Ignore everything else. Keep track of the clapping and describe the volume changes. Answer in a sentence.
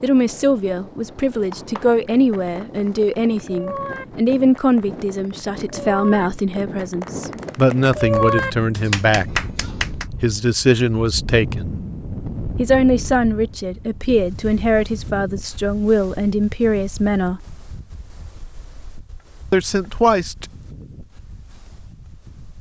The volume of the clapping goes up.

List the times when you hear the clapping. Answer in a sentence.
You can hear the clapping from 1.5 to 10.1 s.